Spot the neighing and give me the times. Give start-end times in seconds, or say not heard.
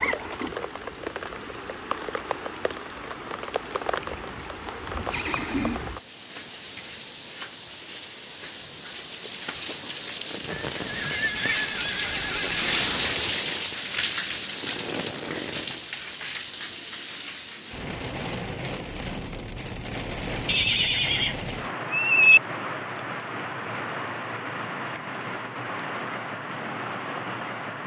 5.0-5.8, 10.7-12.9, 20.4-22.4.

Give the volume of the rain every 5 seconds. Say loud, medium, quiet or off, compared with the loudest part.
medium, medium, loud, medium, medium, medium.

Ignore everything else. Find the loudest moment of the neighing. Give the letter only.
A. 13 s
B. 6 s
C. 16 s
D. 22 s
D.